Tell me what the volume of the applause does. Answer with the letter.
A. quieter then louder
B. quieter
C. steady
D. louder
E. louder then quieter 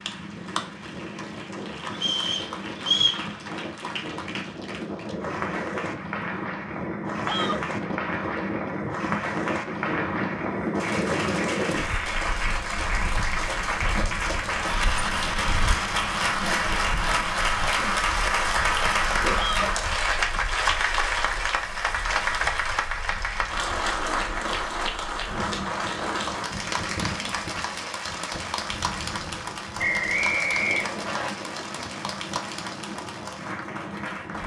E.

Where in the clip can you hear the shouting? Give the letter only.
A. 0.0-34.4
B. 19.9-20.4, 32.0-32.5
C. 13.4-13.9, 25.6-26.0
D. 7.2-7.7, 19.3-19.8
D.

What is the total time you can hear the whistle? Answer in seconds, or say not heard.
3 s.